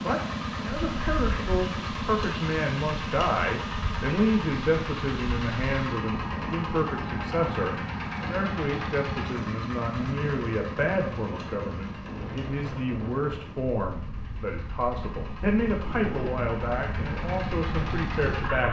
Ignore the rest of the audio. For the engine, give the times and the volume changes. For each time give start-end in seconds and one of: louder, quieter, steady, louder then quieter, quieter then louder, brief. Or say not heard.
0.0-18.6 quieter then louder.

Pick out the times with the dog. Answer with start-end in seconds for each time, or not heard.
not heard.